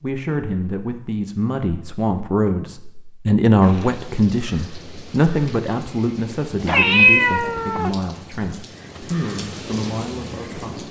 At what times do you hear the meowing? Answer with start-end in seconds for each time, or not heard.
6.7-7.9.